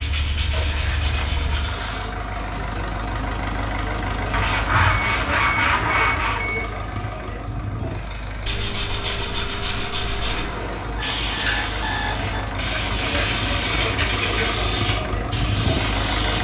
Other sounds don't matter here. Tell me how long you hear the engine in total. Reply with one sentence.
You can hear the engine for 16 seconds altogether.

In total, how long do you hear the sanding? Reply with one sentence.
You can hear the sanding for 8 seconds altogether.